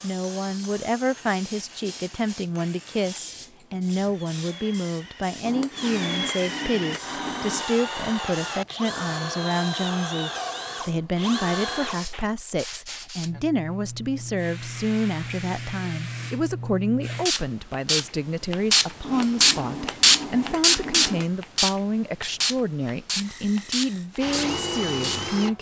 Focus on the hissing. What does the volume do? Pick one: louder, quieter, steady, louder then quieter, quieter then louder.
louder.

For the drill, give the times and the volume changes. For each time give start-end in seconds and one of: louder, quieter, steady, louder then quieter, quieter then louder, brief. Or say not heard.
0.0-12.2 louder
23.2-25.5 brief.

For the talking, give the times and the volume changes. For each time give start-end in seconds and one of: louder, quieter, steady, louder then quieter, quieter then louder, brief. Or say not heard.
0.0-25.5 steady.